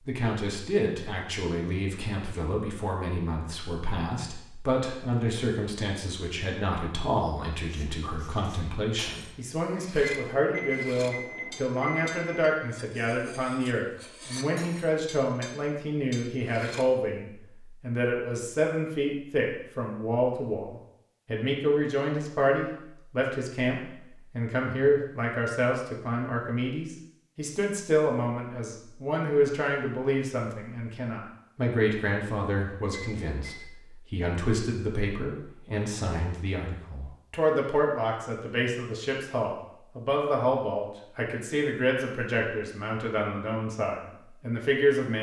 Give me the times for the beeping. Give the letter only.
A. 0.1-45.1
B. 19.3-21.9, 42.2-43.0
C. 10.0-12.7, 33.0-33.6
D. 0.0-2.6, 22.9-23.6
C.